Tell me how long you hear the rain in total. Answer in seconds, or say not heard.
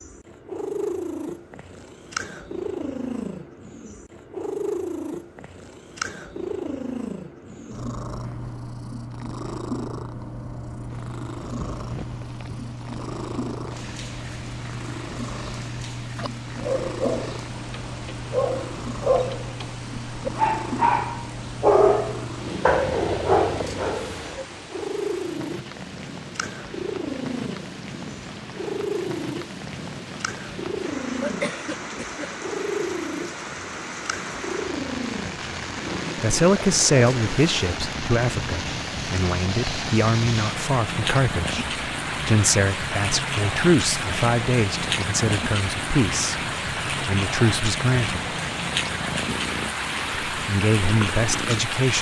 41 s.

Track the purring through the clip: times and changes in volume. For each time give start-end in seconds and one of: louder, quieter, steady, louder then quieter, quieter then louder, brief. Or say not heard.
0.0-51.9 steady.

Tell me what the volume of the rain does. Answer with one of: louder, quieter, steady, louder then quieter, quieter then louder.
louder.